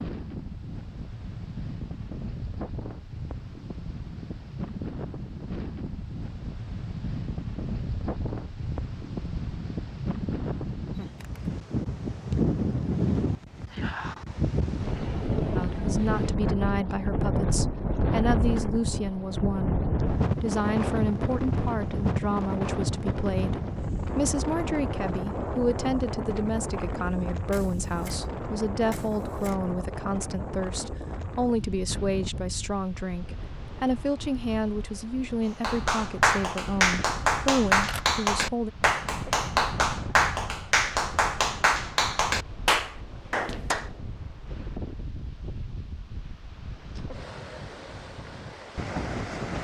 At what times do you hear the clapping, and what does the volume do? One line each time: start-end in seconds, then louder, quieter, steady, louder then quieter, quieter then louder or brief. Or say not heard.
35.6-43.9 steady.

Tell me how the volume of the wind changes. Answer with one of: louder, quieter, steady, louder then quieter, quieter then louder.
louder then quieter.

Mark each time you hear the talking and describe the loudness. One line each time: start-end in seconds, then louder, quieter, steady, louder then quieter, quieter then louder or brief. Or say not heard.
15.6-38.7 steady.